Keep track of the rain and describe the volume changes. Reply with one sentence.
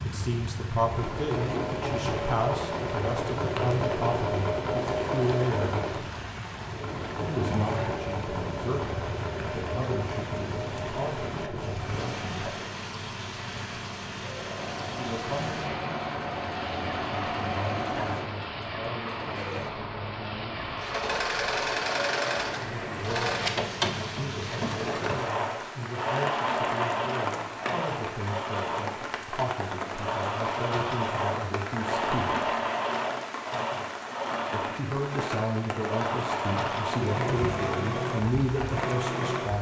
The loudness of the rain stays about the same.